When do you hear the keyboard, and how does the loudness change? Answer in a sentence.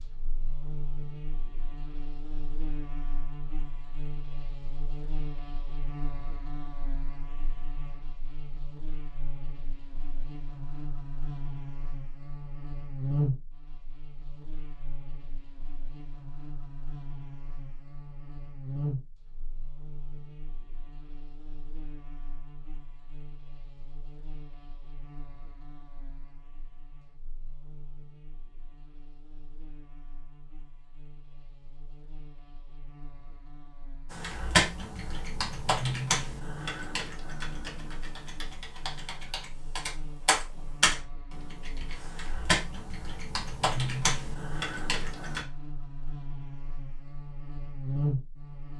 The keyboard can be heard from 34.1 to 45.5 s, getting quieter then louder.